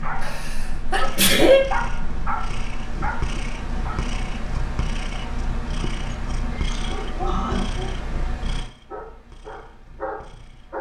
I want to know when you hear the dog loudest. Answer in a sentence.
The volume of the dog peaks at 2 seconds.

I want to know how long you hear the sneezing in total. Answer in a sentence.
You can hear the sneezing for 3 seconds altogether.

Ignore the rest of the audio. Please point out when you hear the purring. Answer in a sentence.
You can hear the purring from 0.0 to 10.7 s.